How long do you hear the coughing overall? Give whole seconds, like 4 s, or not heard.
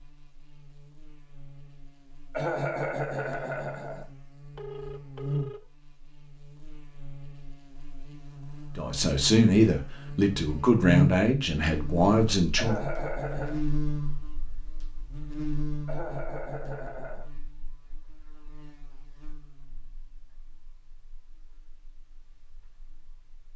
4 s.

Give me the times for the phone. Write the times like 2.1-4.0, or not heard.
4.5-5.7.